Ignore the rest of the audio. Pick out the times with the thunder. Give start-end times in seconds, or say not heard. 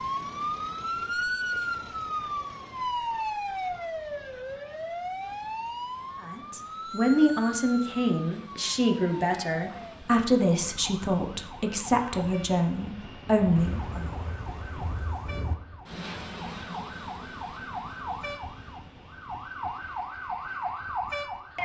13.6-15.6.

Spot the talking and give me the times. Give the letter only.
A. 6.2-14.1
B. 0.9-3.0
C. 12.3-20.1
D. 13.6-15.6
A.